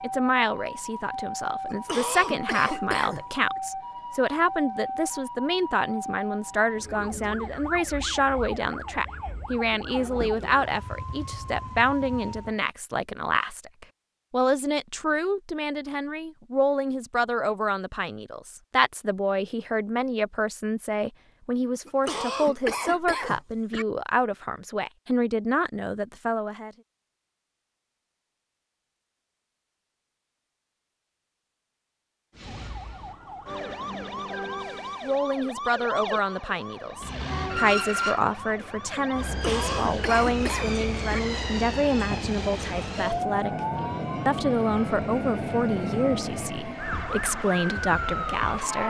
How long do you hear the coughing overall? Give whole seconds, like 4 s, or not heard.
6 s.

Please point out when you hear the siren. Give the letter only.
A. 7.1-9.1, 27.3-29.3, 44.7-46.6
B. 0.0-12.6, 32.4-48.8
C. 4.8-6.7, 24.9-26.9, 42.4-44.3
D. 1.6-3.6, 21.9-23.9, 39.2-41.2
B.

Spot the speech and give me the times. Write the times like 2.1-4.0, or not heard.
0.0-26.7, 35.0-48.8.